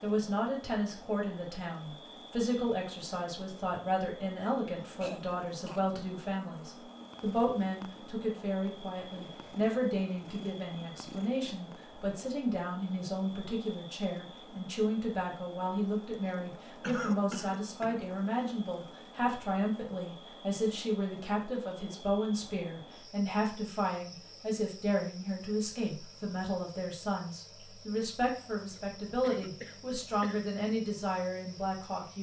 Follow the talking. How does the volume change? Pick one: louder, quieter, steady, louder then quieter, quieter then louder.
steady.